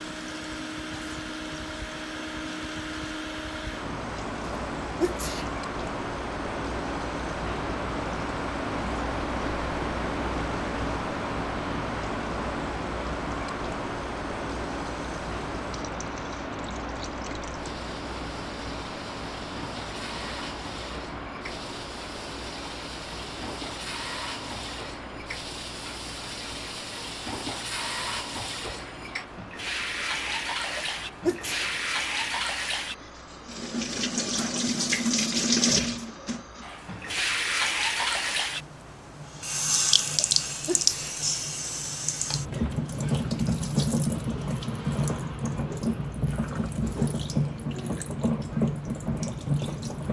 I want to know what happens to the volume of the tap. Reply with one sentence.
The volume of the tap goes up.